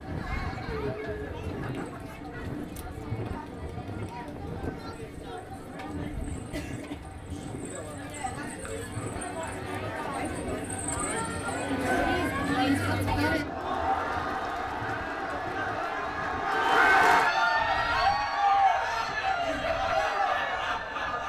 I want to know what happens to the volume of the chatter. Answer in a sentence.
The volume of the chatter goes up.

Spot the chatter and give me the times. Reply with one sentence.
You can hear the chatter from 0.0 to 21.2 s.